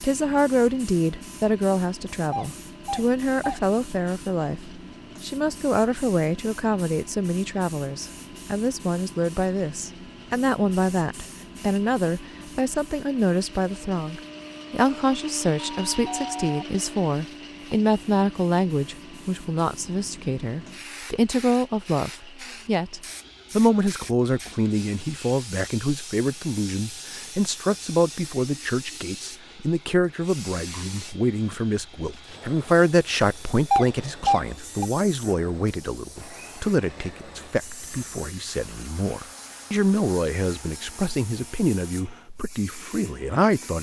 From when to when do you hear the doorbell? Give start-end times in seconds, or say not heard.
2.3-3.6, 14.8-16.6, 33.7-34.9.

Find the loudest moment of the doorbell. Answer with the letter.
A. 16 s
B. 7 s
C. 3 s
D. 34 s
D.